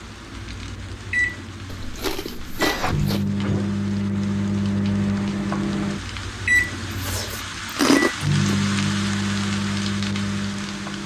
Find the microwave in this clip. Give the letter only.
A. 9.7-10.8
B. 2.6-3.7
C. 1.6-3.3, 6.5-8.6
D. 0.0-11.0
D.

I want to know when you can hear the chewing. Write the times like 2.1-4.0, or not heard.
1.6-3.3, 6.5-8.6.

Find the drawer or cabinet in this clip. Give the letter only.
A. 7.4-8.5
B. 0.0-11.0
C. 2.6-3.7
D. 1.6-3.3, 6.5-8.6
C.